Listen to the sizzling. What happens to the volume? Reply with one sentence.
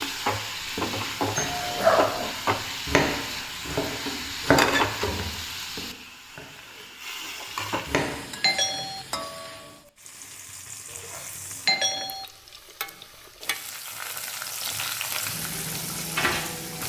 The volume of the sizzling goes down, then up.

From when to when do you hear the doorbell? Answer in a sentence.
The doorbell can be heard from 1.4 to 2.4 s, from 8.4 to 9.1 s and from 11.7 to 12.2 s.